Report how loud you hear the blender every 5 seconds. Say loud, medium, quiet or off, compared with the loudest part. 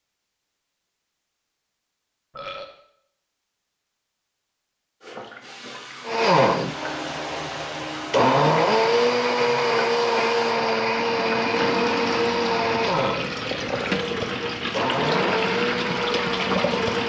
off, loud, loud, medium.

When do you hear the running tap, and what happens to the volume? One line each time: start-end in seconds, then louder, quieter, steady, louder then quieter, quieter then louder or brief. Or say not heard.
5.0-17.0 louder.